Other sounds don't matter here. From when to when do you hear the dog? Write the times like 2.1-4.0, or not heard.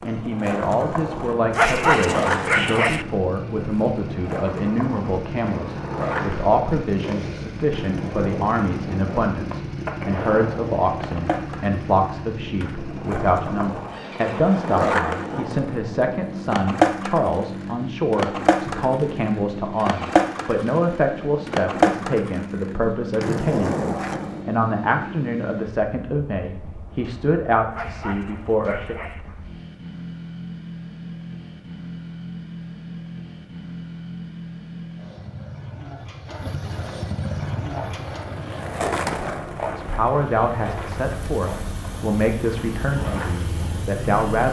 1.5-3.0, 27.7-29.2.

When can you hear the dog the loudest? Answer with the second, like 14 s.
2 s.